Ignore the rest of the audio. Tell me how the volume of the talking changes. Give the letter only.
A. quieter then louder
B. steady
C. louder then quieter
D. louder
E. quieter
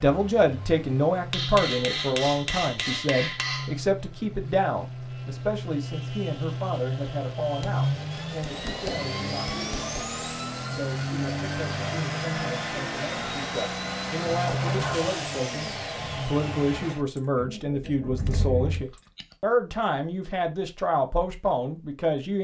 A.